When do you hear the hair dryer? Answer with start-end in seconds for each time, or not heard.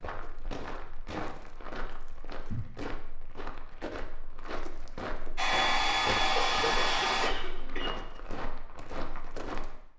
5.3-7.3.